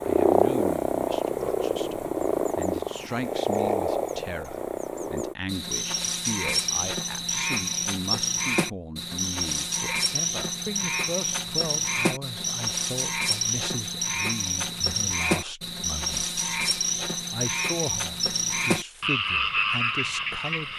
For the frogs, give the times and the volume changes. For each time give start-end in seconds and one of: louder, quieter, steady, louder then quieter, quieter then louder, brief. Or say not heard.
0.0-20.7 steady.